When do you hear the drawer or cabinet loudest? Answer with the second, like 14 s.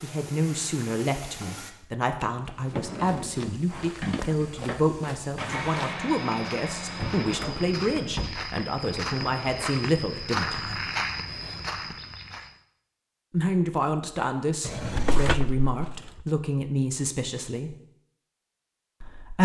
15 s.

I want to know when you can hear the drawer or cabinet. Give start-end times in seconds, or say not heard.
2.5-3.5, 7.0-9.8, 14.6-16.2.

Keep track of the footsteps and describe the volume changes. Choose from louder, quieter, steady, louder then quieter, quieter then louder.
louder.